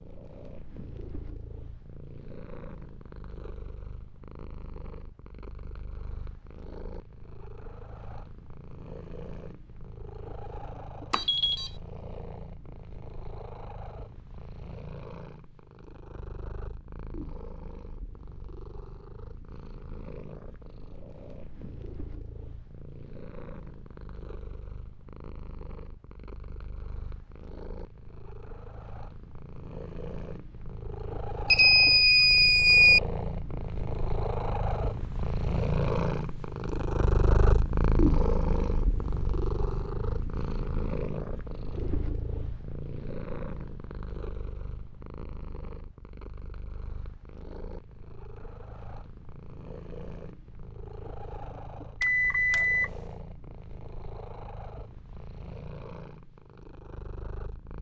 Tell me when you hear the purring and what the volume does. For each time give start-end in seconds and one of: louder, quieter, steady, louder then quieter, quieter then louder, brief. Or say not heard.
0.0-57.7 louder then quieter.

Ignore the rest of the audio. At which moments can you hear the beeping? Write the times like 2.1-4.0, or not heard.
11.1-11.7, 31.5-33.0, 52.0-52.9.